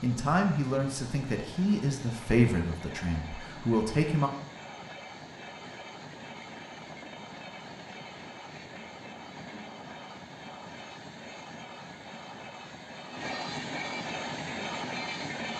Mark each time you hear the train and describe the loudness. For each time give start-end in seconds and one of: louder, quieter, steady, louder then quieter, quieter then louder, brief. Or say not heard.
0.0-15.5 louder.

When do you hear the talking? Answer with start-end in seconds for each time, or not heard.
0.0-4.3.